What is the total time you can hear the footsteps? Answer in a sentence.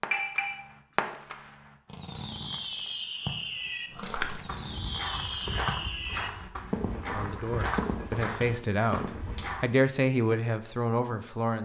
The footsteps can be heard for 6 seconds in total.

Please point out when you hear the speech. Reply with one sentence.
The speech can be heard from 7.1 to 11.6 s.